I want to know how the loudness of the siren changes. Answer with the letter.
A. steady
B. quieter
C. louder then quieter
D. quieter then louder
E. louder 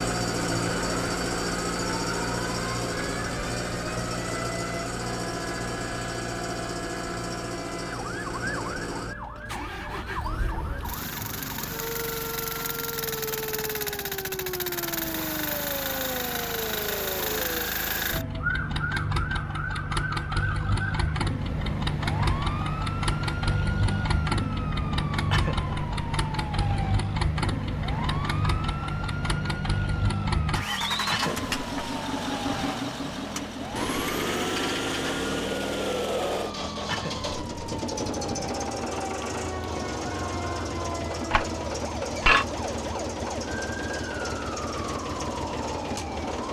A.